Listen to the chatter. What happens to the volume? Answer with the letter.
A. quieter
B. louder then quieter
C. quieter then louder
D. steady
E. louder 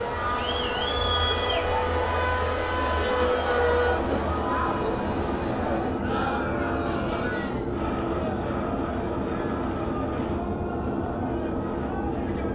A.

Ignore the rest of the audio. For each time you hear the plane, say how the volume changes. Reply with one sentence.
The plane can be heard from 0.0 to 12.4 s, at a steady volume.